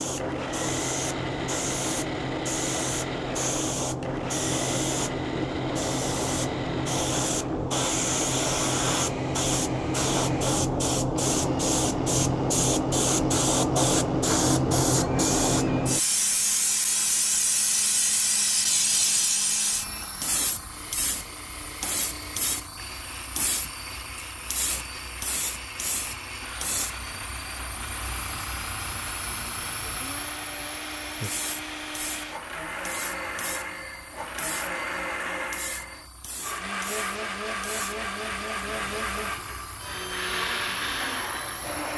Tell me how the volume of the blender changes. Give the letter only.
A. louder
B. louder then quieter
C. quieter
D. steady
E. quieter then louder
E.